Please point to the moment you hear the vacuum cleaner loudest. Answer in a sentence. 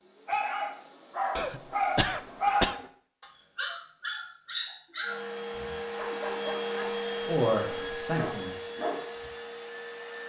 The loudest moment of the vacuum cleaner is at 7 seconds.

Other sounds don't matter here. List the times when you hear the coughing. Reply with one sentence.
The coughing can be heard from 1.4 to 2.8 s.